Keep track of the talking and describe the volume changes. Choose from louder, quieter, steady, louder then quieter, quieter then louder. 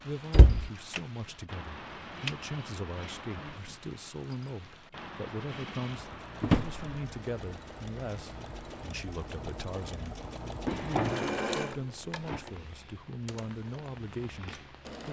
steady.